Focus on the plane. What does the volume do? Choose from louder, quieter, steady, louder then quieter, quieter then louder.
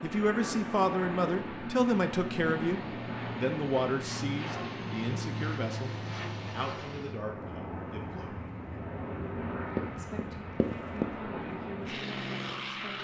steady.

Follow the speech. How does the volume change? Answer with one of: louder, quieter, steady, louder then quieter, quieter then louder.
quieter.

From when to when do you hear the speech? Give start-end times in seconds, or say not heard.
0.0-8.3, 9.9-13.0.